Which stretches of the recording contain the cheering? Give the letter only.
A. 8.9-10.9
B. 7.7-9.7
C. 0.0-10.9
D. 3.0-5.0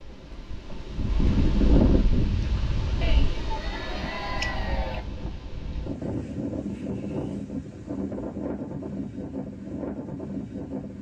D.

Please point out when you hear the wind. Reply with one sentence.
The wind can be heard from 0.0 to 10.9 s.